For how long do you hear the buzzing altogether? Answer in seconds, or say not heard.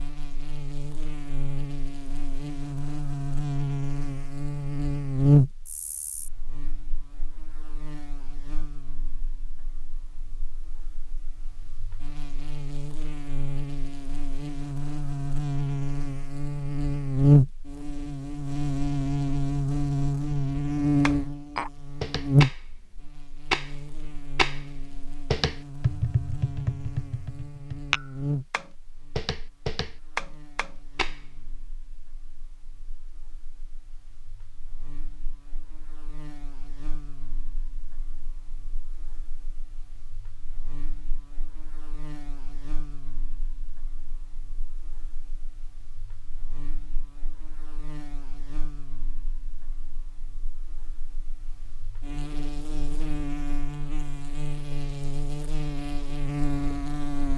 57 s.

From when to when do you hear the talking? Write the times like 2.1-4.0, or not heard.
not heard.